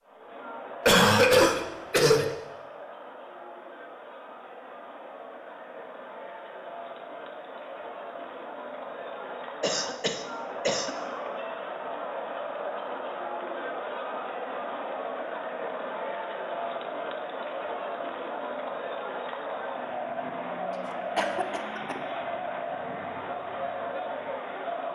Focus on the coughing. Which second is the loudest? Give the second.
1 s.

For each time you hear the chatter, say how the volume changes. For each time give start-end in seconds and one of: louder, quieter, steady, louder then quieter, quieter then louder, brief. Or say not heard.
0.0-24.9 louder.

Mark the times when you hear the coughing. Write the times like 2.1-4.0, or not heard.
0.8-2.3, 9.6-10.9, 21.1-21.9.